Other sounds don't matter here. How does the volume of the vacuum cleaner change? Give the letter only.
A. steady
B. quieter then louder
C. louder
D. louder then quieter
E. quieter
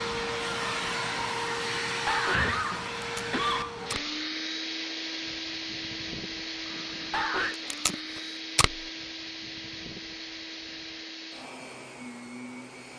E.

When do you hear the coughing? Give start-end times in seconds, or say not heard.
1.6-3.8, 6.7-7.5.